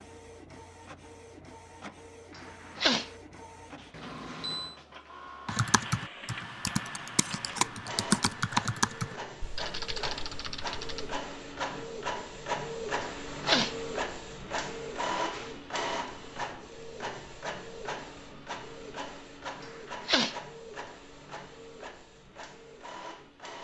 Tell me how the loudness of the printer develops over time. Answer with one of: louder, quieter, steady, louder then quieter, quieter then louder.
louder then quieter.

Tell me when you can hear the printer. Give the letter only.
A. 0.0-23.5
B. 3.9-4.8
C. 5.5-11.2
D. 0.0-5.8
A.